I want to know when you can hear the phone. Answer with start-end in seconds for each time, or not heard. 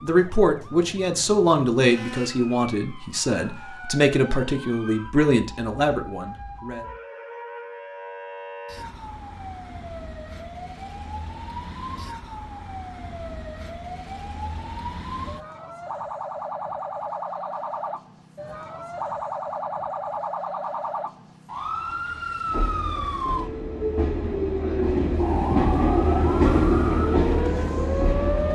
not heard.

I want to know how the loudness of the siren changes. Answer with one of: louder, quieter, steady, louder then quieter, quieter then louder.
louder.